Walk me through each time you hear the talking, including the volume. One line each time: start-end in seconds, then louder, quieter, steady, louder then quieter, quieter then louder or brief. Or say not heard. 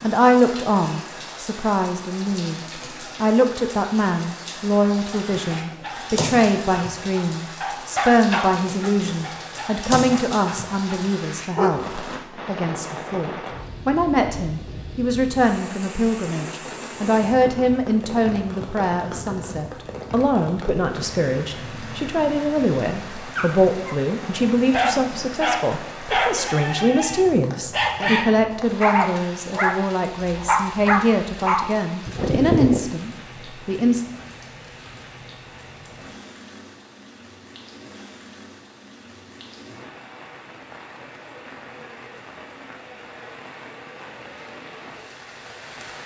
0.0-34.0 steady.